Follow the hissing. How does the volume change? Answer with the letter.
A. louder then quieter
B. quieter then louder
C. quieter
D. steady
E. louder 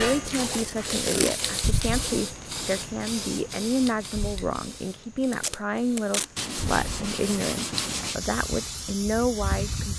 B.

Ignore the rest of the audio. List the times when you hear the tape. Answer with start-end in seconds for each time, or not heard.
0.2-1.4, 5.3-6.5.